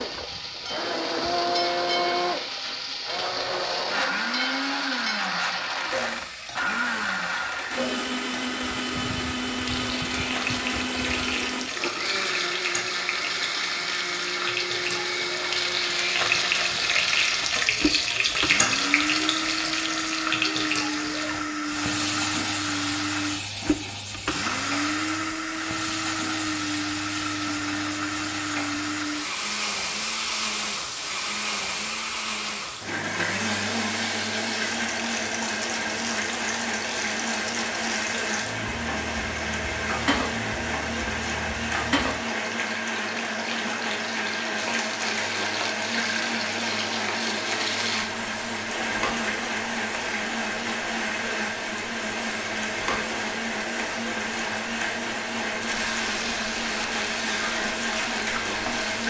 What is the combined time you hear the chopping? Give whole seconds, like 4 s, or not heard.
not heard.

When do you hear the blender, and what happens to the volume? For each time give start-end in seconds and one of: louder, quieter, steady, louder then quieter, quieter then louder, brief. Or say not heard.
0.0-59.0 steady.